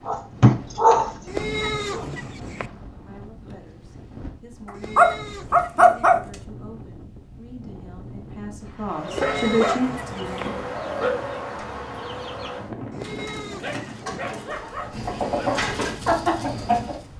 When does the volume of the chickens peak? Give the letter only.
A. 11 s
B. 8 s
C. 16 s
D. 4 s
C.